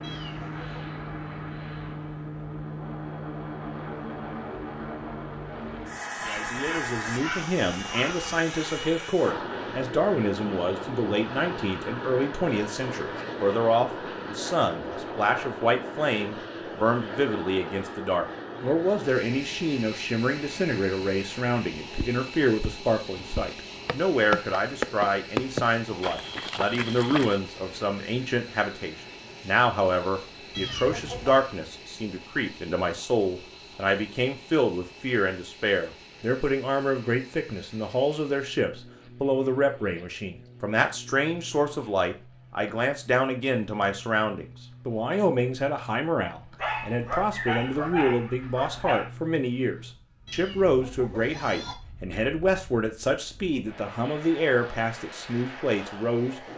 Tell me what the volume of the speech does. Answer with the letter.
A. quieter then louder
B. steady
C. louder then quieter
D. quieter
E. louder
B.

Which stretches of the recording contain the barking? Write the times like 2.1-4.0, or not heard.
6.2-8.2, 46.5-49.1.